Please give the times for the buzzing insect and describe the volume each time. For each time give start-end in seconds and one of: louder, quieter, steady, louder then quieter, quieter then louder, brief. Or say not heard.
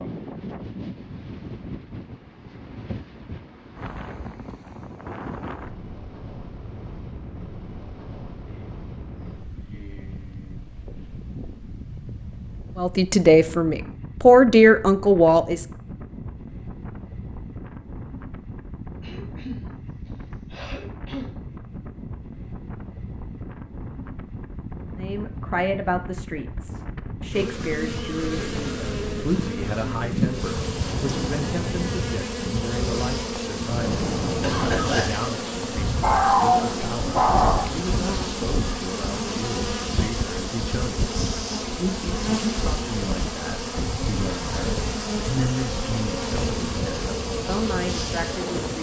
27.3-48.7 steady.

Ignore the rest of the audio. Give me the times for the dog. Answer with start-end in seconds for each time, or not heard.
36.0-37.6.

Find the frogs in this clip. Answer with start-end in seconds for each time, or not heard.
not heard.